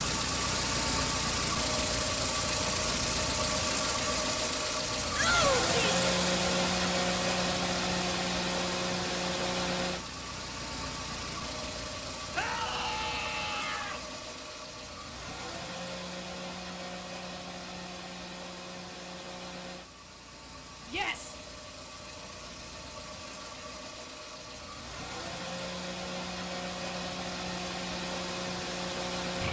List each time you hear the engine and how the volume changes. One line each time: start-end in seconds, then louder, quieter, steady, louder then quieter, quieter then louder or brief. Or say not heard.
0.0-29.4 quieter then louder.